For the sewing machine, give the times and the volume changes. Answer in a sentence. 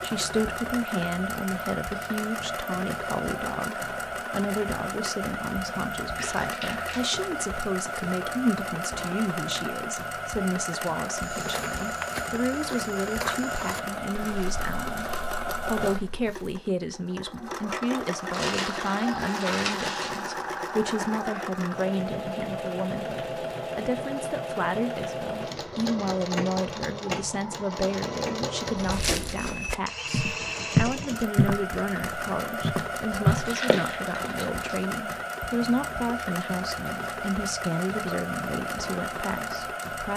The sewing machine can be heard from 0.0 to 40.1 s, at a steady volume.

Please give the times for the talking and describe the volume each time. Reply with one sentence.
You can hear the talking from 0.0 to 40.1 s, at a steady volume.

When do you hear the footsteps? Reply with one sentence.
You can hear the footsteps from 11.2 to 16.7 s and from 28.8 to 34.3 s.